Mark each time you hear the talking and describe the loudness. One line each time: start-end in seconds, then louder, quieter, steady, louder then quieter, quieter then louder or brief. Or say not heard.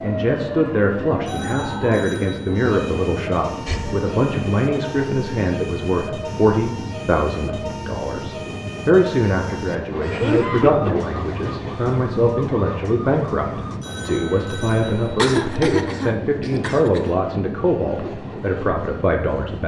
0.0-19.6 steady.